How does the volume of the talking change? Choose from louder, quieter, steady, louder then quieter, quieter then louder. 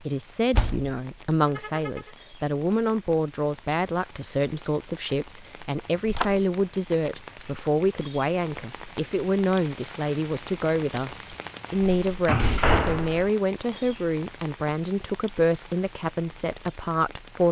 steady.